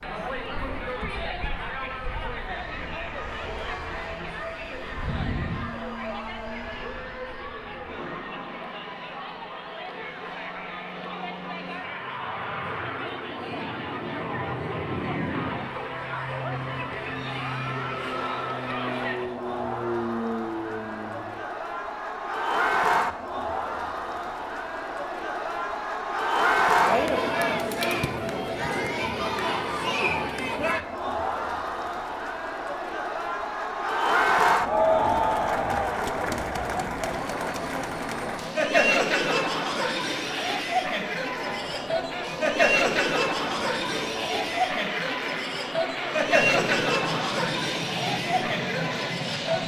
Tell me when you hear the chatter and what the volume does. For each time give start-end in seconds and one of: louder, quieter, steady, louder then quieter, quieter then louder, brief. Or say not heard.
0.0-49.6 louder.